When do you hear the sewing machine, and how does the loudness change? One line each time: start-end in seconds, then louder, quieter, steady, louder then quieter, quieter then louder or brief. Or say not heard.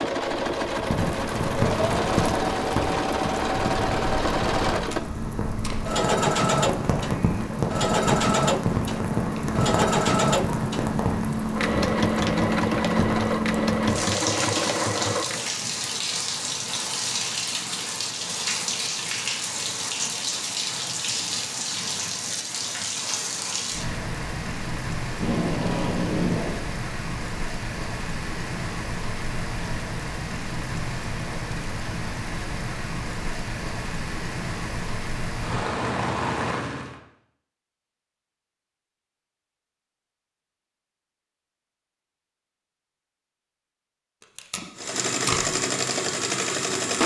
0.0-15.5 steady
44.8-47.0 brief.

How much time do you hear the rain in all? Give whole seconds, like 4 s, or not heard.
37 s.